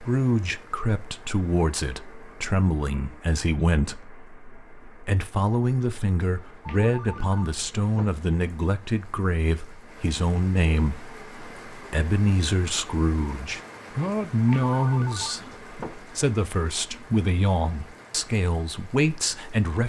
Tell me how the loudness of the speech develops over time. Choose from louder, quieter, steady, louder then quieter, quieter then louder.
steady.